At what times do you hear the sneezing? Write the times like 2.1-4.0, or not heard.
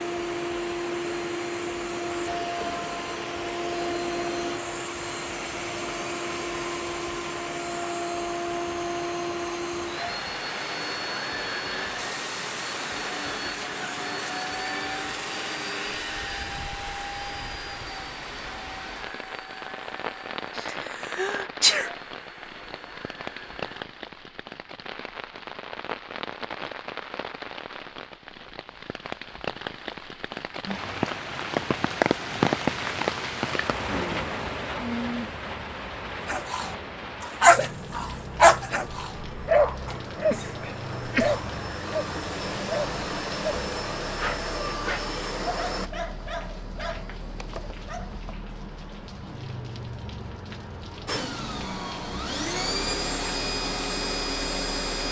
20.6-21.9, 39.9-41.5.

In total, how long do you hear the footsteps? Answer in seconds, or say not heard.
not heard.